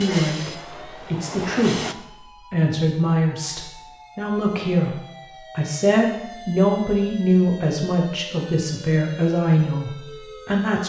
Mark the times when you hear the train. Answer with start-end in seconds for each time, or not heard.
0.0-1.9.